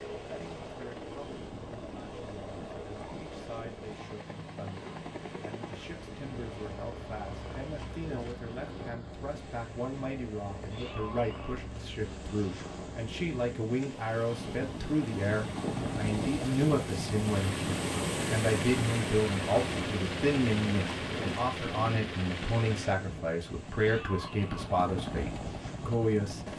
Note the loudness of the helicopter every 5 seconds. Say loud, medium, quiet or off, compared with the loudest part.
medium, medium, medium, loud, loud, loud.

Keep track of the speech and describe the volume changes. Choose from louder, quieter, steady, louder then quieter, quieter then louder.
louder.